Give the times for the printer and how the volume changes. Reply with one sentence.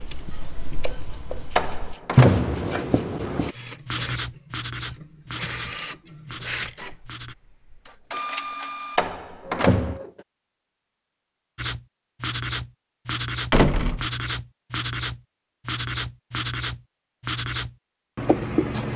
The printer can be heard from 0.0 to 10.2 s, getting louder.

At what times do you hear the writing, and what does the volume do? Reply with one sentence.
You can hear the writing from 0.0 to 7.3 s, getting louder then quieter; and from 11.6 to 18.9 s, at a steady volume.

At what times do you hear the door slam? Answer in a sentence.
The door slam can be heard from 1.6 to 2.7 s, from 8.9 to 10.0 s and from 13.5 to 14.1 s.